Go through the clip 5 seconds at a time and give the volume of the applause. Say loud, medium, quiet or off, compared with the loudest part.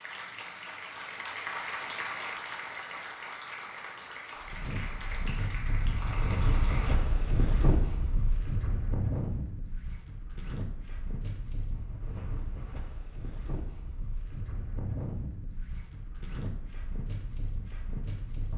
loud, loud, off, off.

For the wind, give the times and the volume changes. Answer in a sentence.
The wind can be heard from 4.3 to 18.5 s, getting quieter.